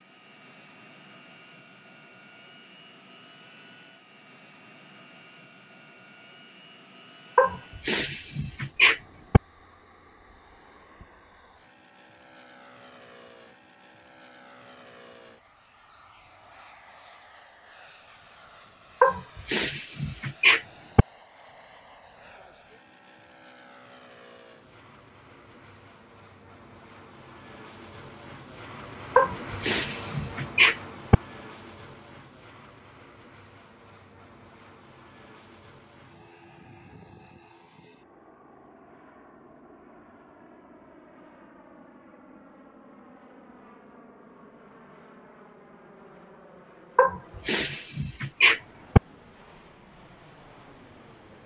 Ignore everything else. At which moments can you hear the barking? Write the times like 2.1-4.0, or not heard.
7.3-9.4, 19.0-21.1, 29.1-31.1, 47.0-49.0.